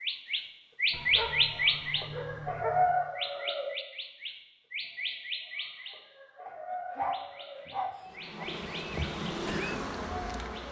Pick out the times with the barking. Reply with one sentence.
You can hear the barking from 0.9 to 2.9 s and from 6.5 to 8.4 s.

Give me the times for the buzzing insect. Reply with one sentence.
You can hear the buzzing insect from 8.0 to 10.6 s.